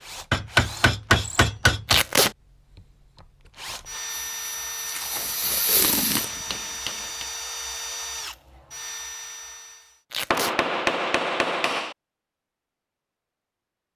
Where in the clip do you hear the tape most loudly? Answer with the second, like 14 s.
2 s.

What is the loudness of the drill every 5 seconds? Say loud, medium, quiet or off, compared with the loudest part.
loud, loud, off.